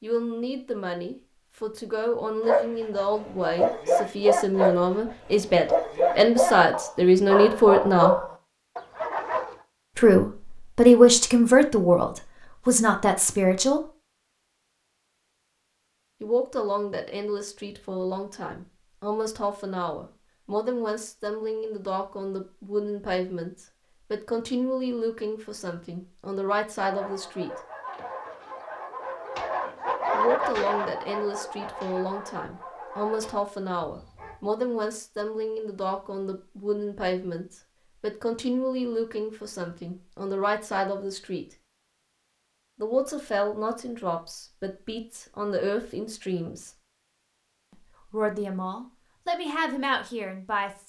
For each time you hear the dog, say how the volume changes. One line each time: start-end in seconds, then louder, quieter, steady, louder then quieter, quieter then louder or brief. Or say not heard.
2.4-9.6 steady
26.8-34.4 louder then quieter.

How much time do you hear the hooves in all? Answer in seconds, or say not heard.
not heard.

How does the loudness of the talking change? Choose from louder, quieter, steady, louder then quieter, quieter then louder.
quieter.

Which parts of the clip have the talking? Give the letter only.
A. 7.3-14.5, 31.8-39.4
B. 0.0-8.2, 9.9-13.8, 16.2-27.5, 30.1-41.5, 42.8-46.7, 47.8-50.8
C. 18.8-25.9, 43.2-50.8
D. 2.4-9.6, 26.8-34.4
B.